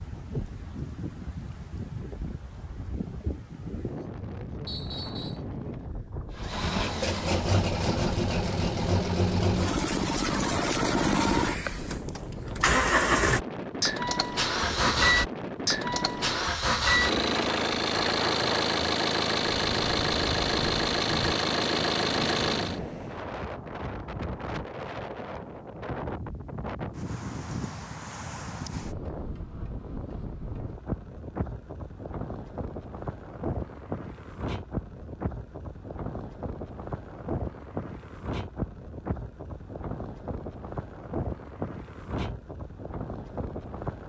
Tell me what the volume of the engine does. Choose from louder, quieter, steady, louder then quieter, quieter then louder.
steady.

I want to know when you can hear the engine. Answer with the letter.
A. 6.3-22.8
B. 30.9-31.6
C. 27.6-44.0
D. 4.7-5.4
A.